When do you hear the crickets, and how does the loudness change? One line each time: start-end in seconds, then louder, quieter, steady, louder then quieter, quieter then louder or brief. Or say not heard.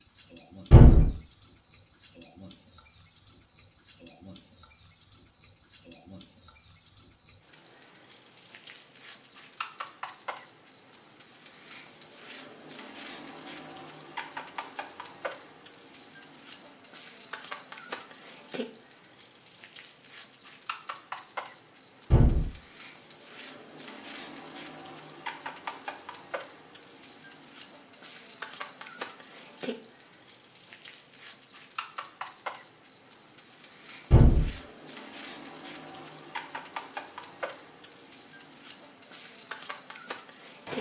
0.0-40.7 steady.